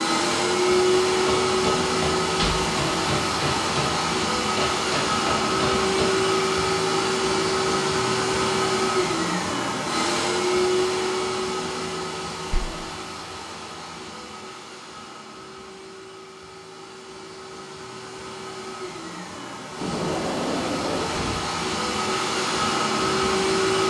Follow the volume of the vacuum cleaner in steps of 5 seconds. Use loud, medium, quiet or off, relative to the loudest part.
loud, loud, medium, quiet, loud.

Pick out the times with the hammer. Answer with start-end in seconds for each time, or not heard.
1.1-6.2.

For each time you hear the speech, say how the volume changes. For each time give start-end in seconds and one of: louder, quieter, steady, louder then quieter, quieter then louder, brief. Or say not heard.
not heard.